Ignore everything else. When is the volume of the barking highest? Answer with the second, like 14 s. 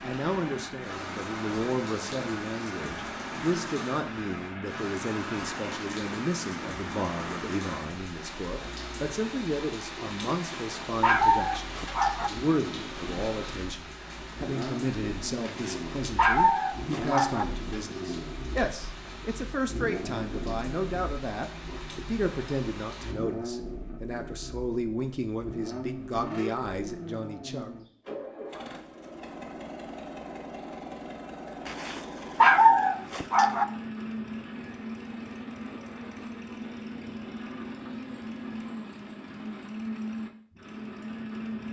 33 s.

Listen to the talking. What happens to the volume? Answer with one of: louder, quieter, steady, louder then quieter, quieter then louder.
steady.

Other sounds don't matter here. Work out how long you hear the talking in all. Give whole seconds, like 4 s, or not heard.
28 s.